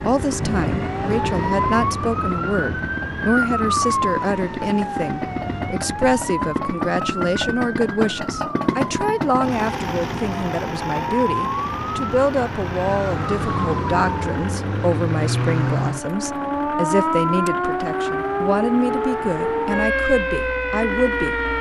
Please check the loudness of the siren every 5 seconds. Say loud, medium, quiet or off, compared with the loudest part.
loud, medium, loud, loud, loud.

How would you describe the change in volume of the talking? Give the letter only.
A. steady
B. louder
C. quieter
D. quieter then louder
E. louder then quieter
A.